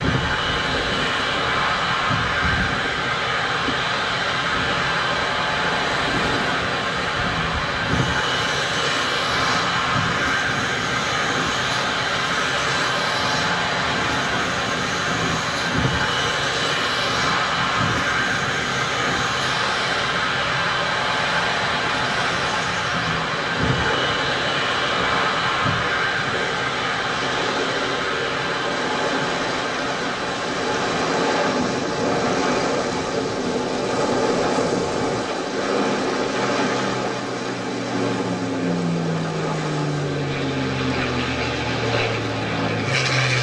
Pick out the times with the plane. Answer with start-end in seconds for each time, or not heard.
0.0-43.3.